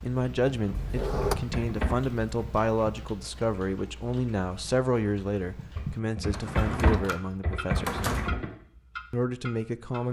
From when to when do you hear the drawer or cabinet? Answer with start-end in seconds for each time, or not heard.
0.7-1.4, 6.3-8.3.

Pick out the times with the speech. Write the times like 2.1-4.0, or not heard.
0.0-8.0, 9.1-10.0.